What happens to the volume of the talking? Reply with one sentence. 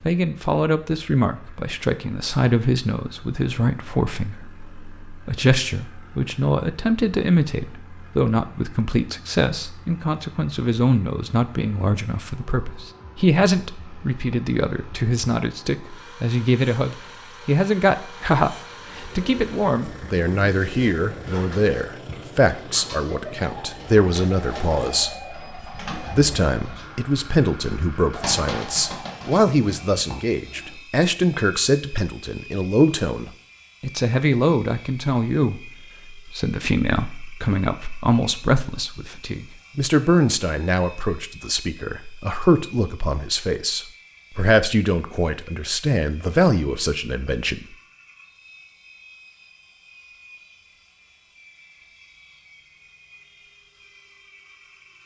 The loudness of the talking stays about the same.